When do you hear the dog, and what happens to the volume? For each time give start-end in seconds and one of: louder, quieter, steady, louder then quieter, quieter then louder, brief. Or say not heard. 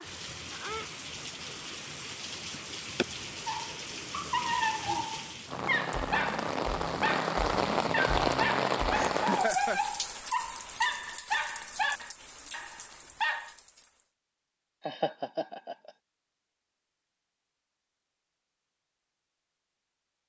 3.5-13.6 steady.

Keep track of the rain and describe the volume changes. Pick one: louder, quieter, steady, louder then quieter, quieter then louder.
louder then quieter.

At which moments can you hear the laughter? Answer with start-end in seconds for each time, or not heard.
2.5-3.0, 8.9-9.8, 14.8-15.9.